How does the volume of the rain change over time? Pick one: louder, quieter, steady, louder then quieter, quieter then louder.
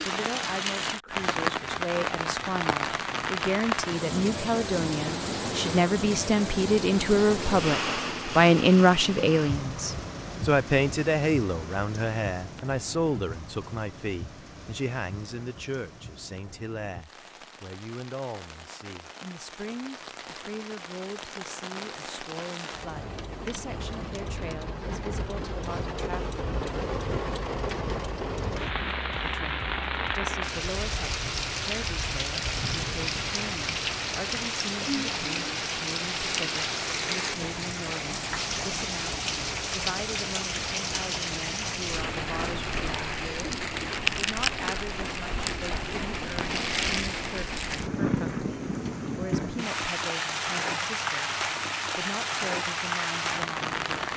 quieter then louder.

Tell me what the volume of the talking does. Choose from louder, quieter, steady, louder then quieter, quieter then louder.
quieter.